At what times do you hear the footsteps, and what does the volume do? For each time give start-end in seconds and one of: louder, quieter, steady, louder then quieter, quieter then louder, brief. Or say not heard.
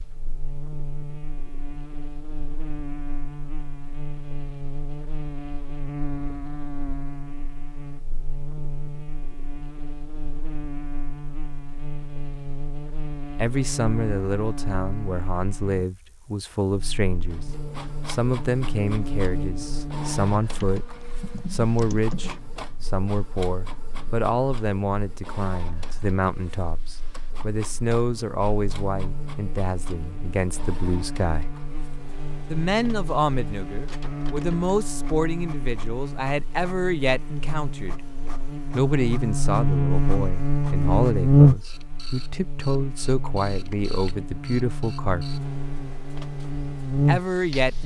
not heard.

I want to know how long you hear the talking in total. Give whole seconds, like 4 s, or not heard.
31 s.